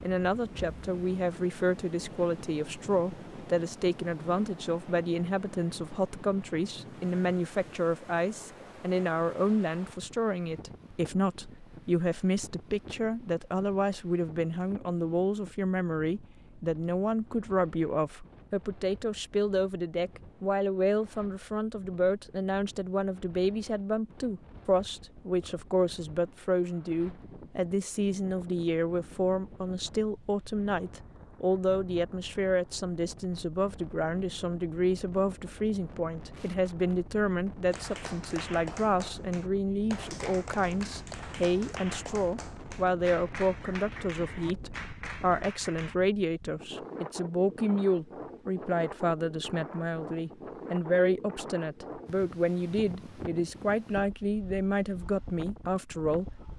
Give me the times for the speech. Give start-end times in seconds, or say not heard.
0.0-56.5.